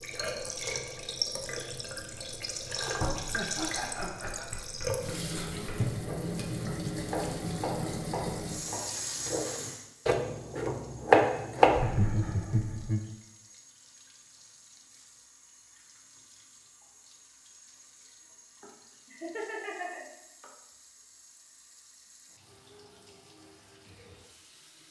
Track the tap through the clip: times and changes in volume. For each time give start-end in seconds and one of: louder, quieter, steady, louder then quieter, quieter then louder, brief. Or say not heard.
0.0-24.8 quieter.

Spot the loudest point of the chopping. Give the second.
11 s.